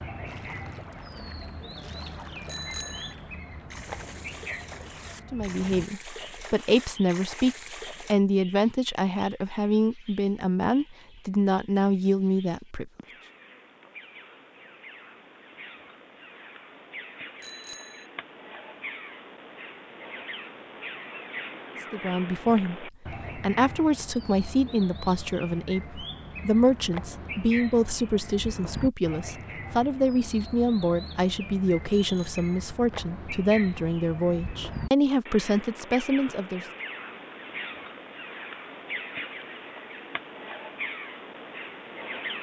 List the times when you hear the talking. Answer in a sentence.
You can hear the talking from 5.3 to 12.9 s and from 21.9 to 36.6 s.